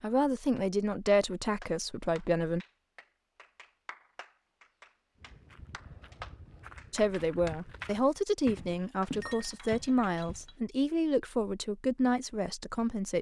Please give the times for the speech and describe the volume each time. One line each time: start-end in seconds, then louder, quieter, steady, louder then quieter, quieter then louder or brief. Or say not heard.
0.0-2.6 brief
6.9-13.1 steady.